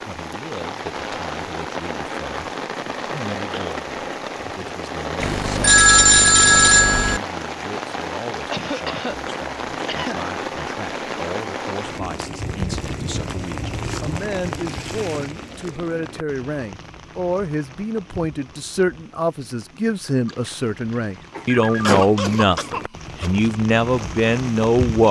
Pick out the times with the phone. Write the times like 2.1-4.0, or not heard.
5.2-7.2, 20.2-21.9.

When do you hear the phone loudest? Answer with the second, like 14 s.
6 s.